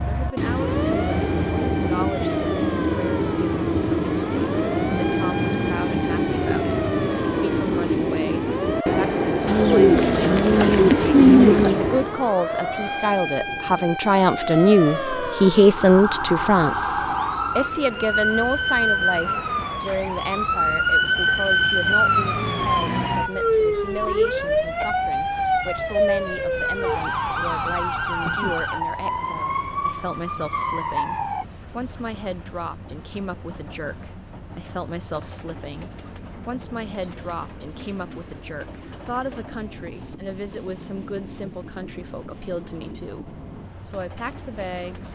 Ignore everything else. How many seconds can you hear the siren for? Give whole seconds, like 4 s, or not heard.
31 s.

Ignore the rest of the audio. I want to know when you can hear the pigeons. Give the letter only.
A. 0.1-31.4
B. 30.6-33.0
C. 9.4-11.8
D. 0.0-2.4
C.